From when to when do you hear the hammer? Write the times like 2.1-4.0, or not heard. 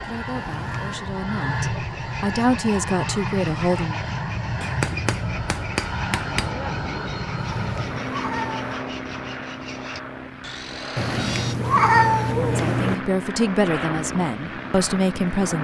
4.6-6.5.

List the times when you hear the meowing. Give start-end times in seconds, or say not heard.
0.3-1.1, 7.4-8.8, 10.9-12.9.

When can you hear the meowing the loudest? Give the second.
12 s.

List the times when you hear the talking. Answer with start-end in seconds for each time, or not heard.
0.0-4.0, 12.2-15.5.